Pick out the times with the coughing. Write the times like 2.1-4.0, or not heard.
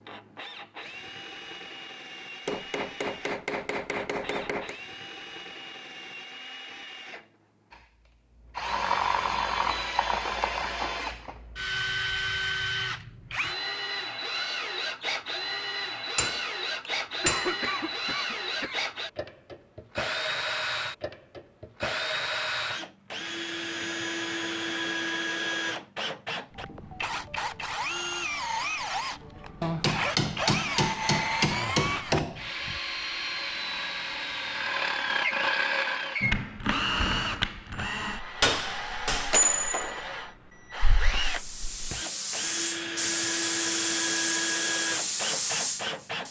17.2-18.8.